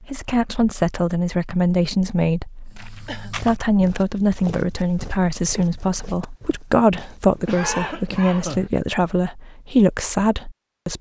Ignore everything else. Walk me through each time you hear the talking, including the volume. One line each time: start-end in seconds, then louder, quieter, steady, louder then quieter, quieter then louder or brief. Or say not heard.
0.0-10.9 steady.